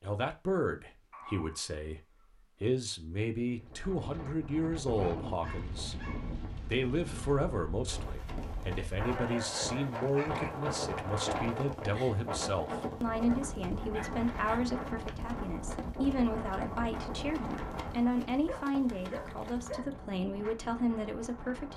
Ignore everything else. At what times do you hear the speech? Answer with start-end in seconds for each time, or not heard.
0.0-2.0, 2.6-6.0, 6.7-21.7.